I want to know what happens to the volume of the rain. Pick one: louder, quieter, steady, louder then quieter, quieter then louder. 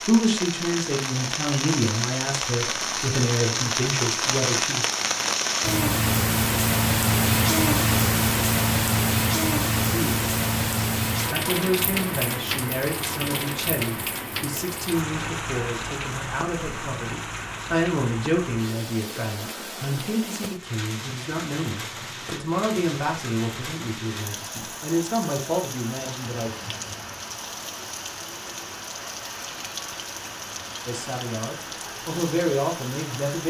quieter.